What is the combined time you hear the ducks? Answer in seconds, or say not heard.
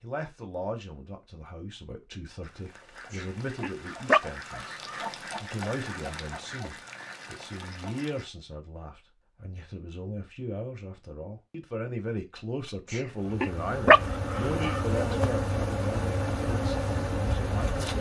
6 s.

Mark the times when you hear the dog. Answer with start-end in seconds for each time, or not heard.
3.1-5.0, 12.8-14.8.